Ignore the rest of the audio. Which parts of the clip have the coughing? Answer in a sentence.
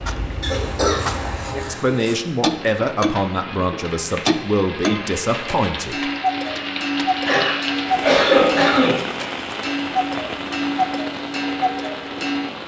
The coughing can be heard from 0.4 to 2.1 s and from 7.2 to 9.0 s.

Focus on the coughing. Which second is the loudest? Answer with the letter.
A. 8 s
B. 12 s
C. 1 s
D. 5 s
A.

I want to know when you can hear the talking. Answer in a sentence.
The talking can be heard from 1.6 to 6.1 s.